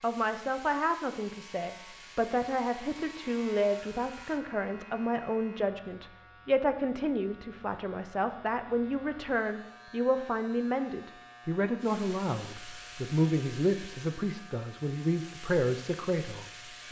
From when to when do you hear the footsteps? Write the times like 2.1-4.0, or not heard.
not heard.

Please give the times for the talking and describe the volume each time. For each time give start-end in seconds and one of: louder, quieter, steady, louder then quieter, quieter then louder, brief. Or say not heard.
0.0-16.8 steady.